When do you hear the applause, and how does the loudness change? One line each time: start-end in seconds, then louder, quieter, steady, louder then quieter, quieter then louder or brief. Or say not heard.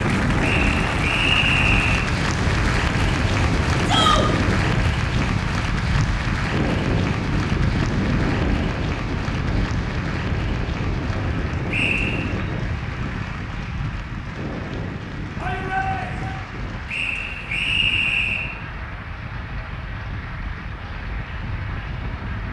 0.0-22.4 quieter.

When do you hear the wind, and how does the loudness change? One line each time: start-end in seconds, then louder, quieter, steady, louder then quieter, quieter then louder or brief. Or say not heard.
0.0-22.4 quieter.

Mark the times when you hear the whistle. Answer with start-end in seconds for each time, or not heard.
0.4-2.0, 11.7-12.3, 16.9-18.4.